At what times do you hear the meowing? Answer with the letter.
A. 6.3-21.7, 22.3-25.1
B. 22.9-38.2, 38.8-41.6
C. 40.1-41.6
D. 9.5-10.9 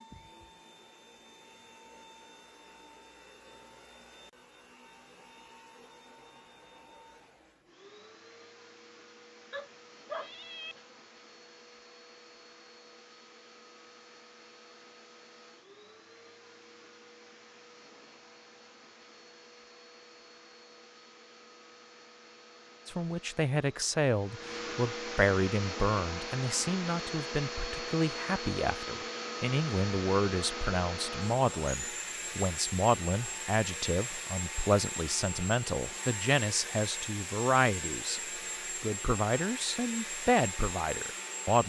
D.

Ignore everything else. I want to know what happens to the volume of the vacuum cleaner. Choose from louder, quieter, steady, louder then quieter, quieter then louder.
louder.